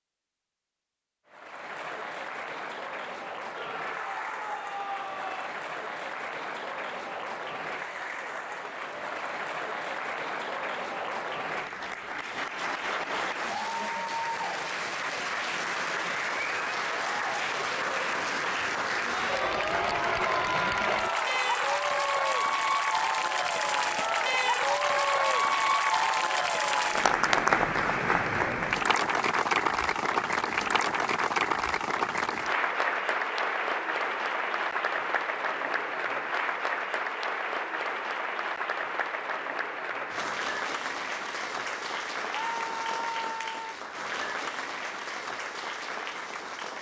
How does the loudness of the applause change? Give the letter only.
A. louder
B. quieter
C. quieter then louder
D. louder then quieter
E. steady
D.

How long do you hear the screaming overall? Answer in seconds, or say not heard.
6 s.